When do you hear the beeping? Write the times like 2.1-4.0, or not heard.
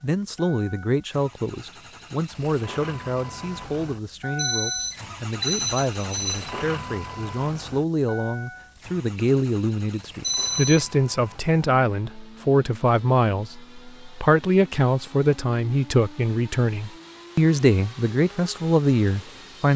4.3-6.5, 10.2-10.8.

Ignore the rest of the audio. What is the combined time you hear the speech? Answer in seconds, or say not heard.
20 s.